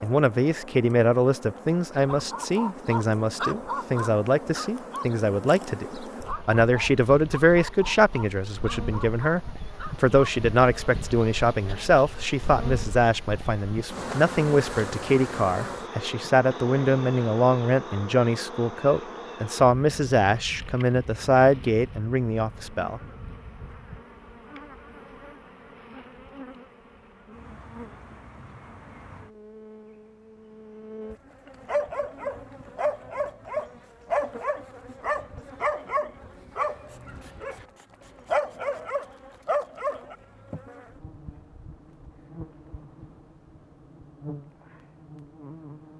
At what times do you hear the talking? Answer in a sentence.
You can hear the talking from 0.0 to 23.0 s.